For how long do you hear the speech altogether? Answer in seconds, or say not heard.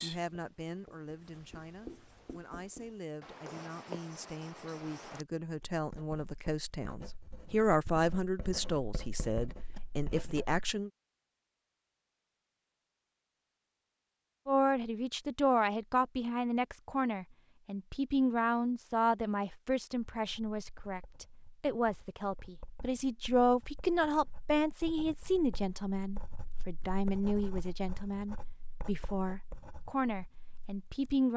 28 s.